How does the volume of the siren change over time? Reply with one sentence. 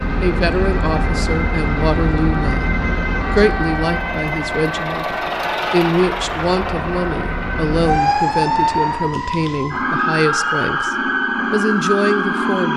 The volume of the siren goes down, then up.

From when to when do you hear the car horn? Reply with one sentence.
You can't hear the car horn here.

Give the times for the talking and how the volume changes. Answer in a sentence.
The talking can be heard from 0.2 to 12.7 s, at a steady volume.